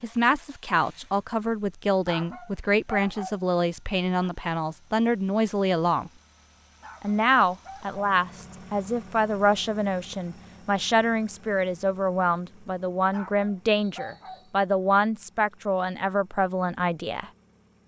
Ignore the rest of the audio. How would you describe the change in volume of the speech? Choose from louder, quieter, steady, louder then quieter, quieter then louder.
steady.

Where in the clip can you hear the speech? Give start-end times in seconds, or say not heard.
0.0-6.1, 7.0-17.3.